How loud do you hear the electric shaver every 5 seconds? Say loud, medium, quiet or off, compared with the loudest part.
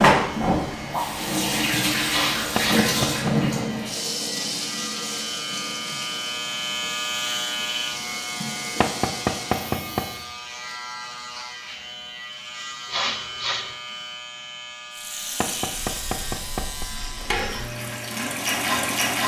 medium, loud, medium, medium.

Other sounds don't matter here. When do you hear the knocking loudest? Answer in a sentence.
The volume of the knocking peaks at 9 seconds.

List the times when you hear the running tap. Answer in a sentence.
The running tap can be heard from 0.0 to 10.2 s and from 14.9 to 19.2 s.